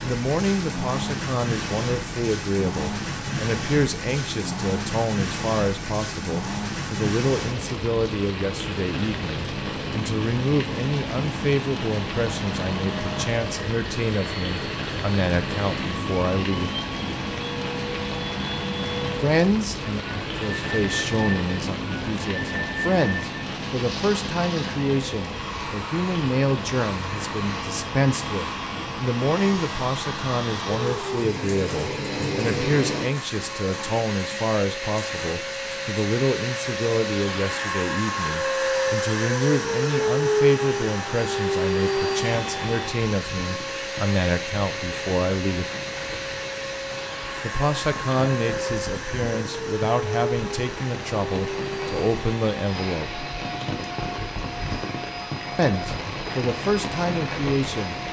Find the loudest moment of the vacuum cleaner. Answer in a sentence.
The volume of the vacuum cleaner peaks at 40 seconds.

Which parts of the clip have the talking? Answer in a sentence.
The talking can be heard from 0.0 to 16.7 s, from 19.2 to 45.6 s, from 47.4 to 53.2 s and from 55.5 to 58.0 s.